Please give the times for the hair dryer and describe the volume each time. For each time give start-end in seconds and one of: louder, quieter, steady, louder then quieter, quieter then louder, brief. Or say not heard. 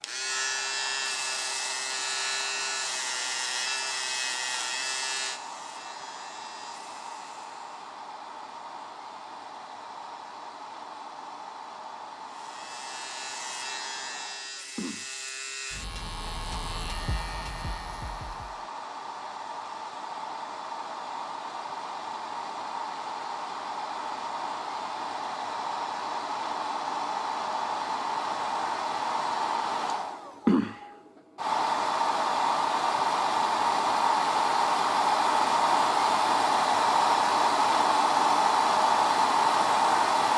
0.0-40.3 louder.